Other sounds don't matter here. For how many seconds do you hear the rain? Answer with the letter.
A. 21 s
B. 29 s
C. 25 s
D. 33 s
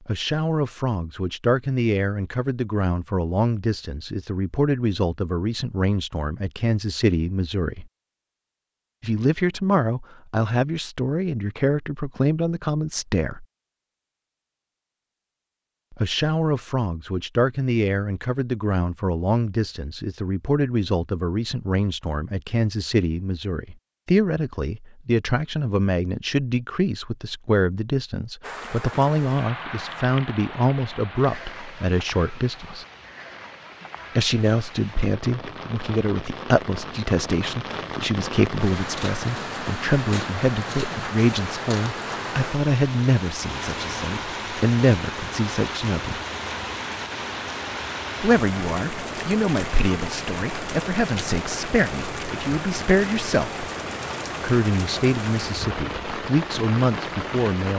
B.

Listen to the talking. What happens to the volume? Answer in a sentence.
The volume of the talking stays about the same.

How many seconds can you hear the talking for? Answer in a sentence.
You can hear the talking for 50 seconds altogether.